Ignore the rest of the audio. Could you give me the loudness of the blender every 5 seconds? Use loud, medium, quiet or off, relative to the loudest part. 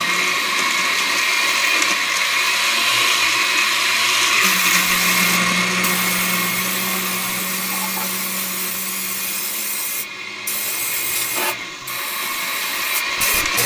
loud, medium, medium.